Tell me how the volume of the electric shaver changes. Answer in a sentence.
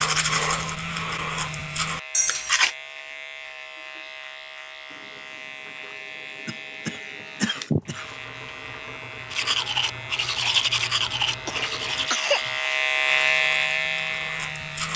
The volume of the electric shaver goes up.